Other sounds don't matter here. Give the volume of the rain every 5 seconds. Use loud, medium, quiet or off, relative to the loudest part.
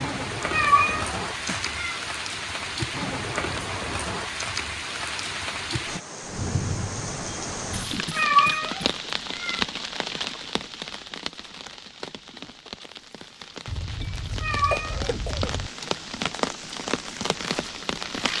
loud, loud, medium, loud.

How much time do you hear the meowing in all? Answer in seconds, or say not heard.
4 s.